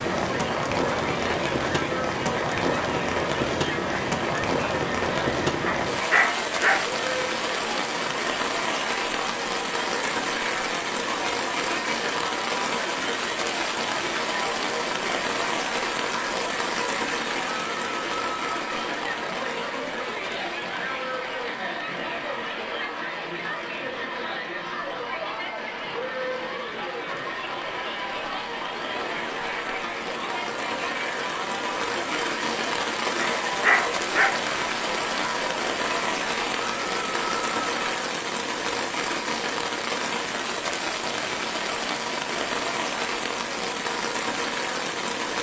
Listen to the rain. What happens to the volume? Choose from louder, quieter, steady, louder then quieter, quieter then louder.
quieter then louder.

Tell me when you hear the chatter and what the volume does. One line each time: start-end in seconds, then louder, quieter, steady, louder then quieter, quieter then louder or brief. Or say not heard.
0.1-38.0 steady.